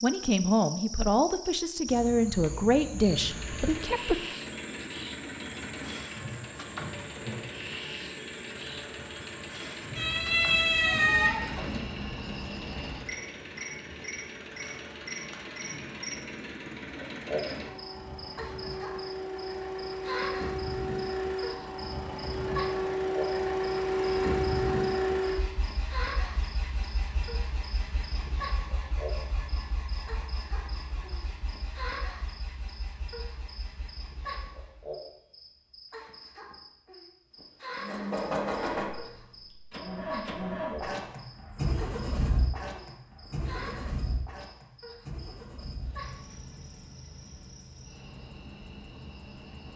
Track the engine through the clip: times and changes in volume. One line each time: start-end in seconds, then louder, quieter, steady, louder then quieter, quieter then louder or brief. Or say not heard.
3.1-34.9 louder then quieter
37.8-49.7 quieter.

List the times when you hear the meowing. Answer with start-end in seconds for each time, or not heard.
9.9-11.8.